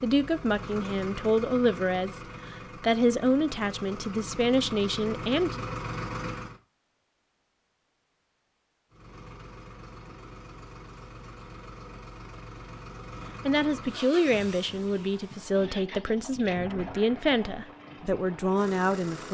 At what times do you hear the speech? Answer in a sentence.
You can hear the speech from 0.0 to 5.7 s and from 13.4 to 19.2 s.